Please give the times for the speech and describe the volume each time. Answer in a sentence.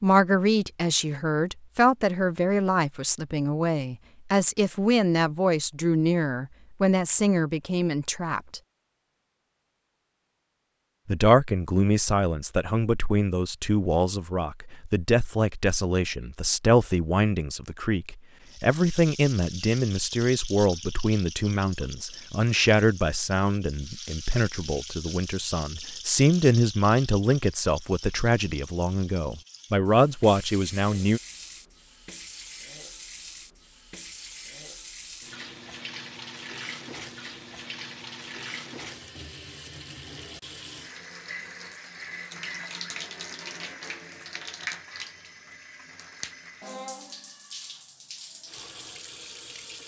You can hear the speech from 0.0 to 8.6 s, at a steady volume; and from 11.1 to 31.2 s, at a steady volume.